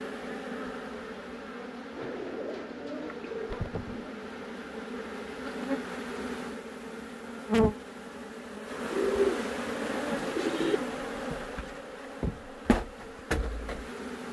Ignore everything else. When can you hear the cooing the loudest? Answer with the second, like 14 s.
9 s.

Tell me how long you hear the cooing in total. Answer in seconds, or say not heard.
4 s.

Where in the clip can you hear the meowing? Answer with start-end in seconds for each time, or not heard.
not heard.